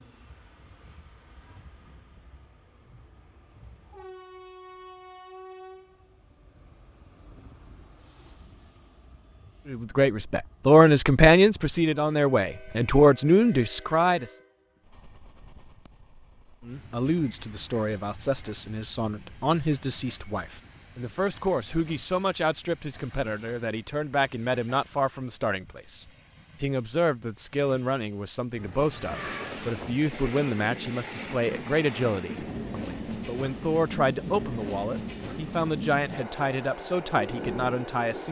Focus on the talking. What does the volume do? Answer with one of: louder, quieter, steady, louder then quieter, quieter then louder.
quieter.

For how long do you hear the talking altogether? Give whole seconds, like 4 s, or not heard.
26 s.